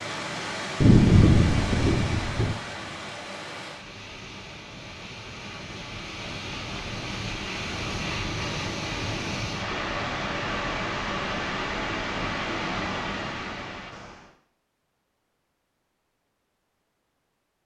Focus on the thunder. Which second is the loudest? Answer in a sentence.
The loudest moment of the thunder is at 1 second.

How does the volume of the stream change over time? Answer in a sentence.
The loudness of the stream goes down, then up.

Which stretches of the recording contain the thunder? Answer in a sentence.
The thunder can be heard from 0.8 to 2.5 s.